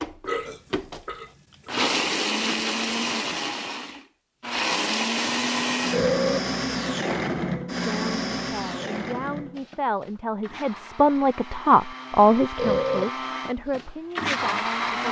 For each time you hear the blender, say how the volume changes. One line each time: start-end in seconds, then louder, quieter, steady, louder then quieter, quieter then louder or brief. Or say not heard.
0.0-15.0 quieter then louder.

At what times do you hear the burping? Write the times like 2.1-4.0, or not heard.
0.2-1.9, 5.9-6.4, 12.6-13.1.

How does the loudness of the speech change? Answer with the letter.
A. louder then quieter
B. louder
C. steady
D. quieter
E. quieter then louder
A.